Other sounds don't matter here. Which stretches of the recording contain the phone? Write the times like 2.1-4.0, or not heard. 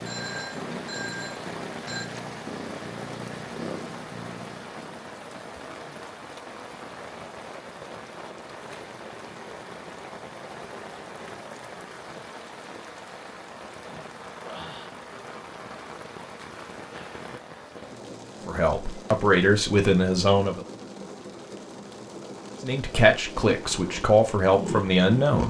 0.1-2.1.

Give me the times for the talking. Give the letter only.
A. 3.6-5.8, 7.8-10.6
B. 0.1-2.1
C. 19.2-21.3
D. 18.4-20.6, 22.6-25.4
D.